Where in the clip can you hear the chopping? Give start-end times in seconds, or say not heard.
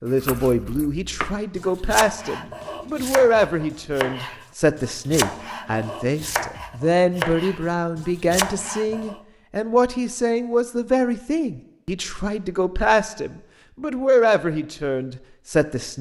0.1-9.2.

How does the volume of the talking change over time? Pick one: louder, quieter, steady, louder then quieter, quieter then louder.
steady.